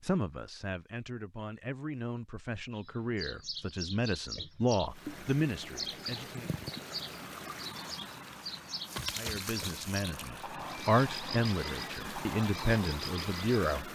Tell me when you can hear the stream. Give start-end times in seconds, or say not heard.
4.9-13.8.